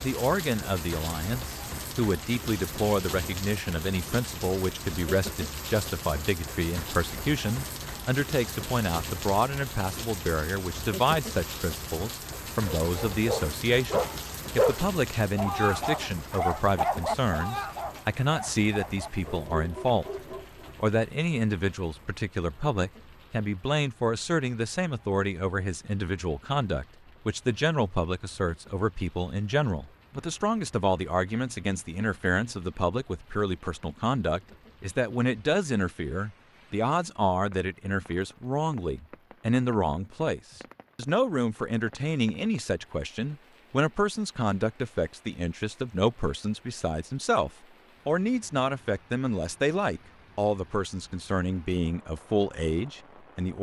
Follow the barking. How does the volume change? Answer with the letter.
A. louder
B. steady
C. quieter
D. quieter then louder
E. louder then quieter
C.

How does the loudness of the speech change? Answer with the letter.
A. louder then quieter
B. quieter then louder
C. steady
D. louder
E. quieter
C.